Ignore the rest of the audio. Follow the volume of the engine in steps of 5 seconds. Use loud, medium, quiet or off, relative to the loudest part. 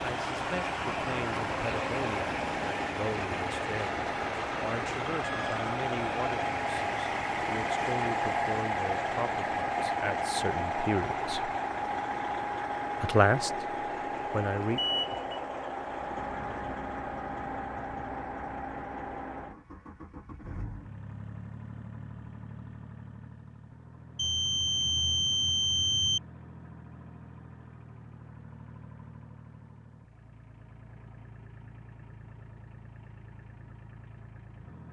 loud, loud, loud, medium, quiet, quiet, quiet.